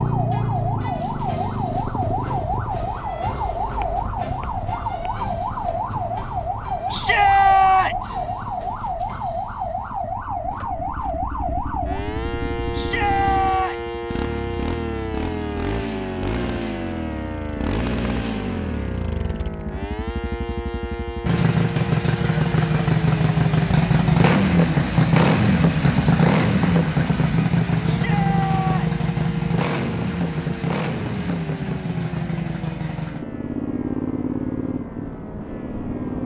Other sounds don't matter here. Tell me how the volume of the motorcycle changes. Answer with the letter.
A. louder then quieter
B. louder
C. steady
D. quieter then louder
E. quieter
A.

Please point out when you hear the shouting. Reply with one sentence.
You can hear the shouting from 6.9 to 8.2 s, from 12.7 to 13.8 s and from 27.8 to 29.1 s.